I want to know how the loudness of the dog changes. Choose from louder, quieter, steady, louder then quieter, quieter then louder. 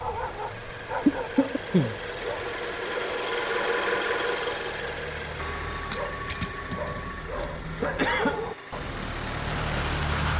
quieter then louder.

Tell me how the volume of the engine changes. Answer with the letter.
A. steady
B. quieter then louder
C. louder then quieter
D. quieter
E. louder
C.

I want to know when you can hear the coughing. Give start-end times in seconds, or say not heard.
1.1-1.9, 7.3-8.4.